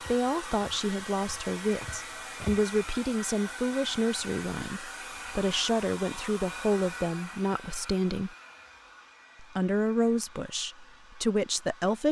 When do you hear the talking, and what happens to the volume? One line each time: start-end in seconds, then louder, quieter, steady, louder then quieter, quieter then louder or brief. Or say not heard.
0.1-8.3 steady
9.4-12.0 brief.